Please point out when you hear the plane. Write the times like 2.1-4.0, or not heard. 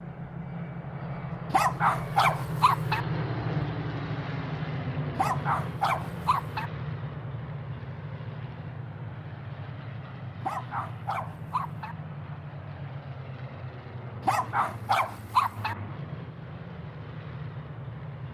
0.0-18.2.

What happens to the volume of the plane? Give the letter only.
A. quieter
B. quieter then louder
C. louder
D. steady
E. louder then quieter
A.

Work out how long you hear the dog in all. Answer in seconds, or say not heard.
6 s.